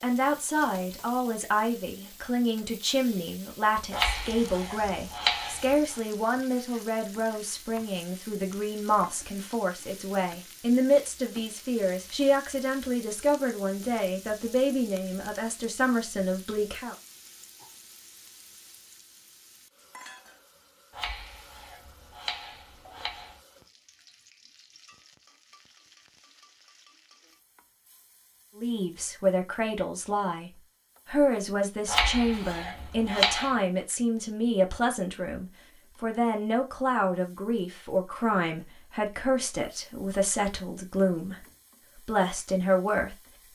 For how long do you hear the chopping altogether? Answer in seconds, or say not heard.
6 s.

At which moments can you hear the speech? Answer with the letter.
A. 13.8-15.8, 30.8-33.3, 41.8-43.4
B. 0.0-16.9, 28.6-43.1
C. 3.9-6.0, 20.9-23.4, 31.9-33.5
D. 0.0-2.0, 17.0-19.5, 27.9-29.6
B.